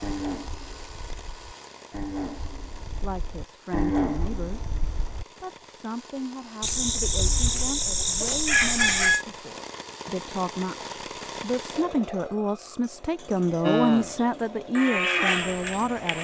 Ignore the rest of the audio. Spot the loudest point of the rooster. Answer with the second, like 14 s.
9 s.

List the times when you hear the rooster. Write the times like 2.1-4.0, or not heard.
6.6-9.2.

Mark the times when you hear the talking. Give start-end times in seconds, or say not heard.
2.9-16.2.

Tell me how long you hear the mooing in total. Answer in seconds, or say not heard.
8 s.